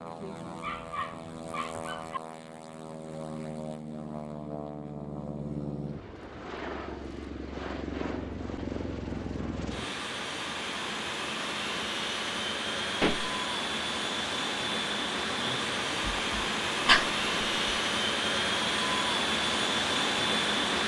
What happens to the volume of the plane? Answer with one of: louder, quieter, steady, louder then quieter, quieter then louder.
louder.